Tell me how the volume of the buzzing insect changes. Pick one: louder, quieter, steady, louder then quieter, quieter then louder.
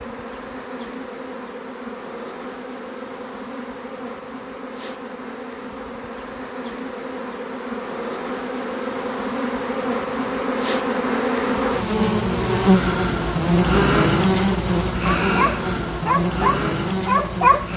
louder.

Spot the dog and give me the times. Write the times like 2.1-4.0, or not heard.
15.2-17.7.